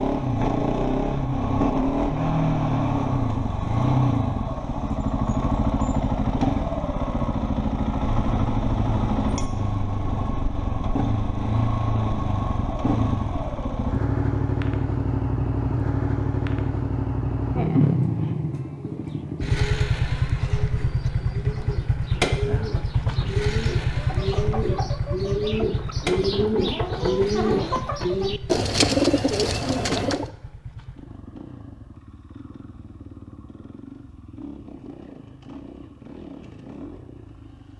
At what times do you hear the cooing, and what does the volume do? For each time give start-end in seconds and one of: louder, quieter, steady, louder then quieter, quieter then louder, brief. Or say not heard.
19.0-30.3 louder.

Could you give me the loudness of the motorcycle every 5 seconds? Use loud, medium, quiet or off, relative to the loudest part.
loud, loud, loud, loud, loud, medium, quiet, quiet.